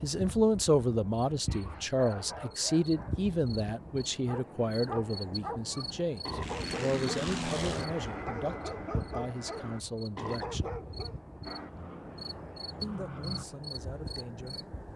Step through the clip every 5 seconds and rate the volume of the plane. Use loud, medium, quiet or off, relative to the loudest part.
off, loud, medium.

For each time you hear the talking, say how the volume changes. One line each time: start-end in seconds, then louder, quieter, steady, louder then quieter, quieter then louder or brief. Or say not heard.
0.0-10.7 quieter
12.8-14.7 brief.